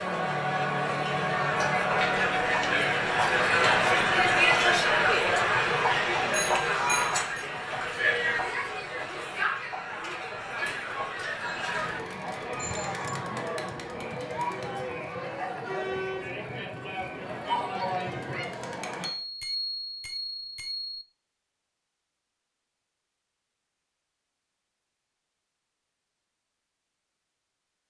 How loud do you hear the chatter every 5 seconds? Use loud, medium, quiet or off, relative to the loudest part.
loud, loud, medium, medium, off, off.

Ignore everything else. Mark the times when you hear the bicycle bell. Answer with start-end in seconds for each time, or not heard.
6.3-7.3, 12.6-13.2, 19.2-21.0.